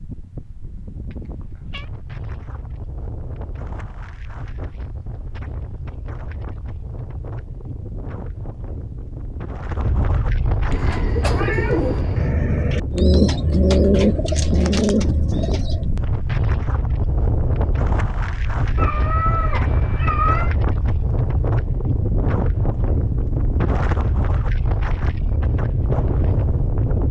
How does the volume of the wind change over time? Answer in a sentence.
The loudness of the wind goes up.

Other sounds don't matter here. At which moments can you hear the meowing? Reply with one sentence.
You can hear the meowing from 1.1 to 1.9 s, from 10.7 to 12.3 s and from 18.8 to 20.6 s.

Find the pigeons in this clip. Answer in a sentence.
You can hear the pigeons from 10.7 to 15.9 s.